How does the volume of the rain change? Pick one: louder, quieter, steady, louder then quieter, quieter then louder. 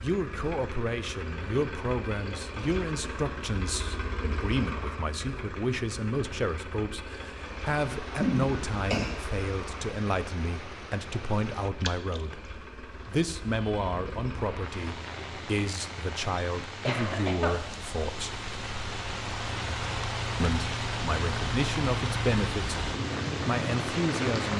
louder.